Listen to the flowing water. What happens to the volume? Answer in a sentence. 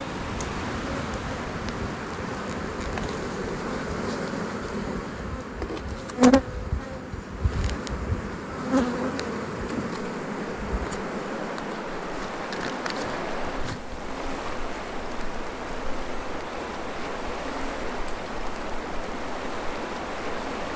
The loudness of the flowing water goes down, then up.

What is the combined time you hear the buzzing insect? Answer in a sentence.
You can hear the buzzing insect for 21 seconds altogether.